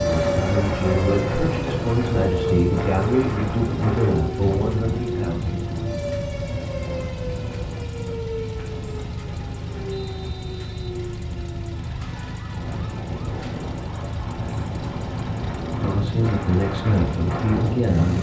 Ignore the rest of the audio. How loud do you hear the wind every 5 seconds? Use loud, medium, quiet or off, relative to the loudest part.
loud, medium, medium, loud.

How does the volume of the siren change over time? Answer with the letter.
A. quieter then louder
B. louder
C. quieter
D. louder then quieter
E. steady
C.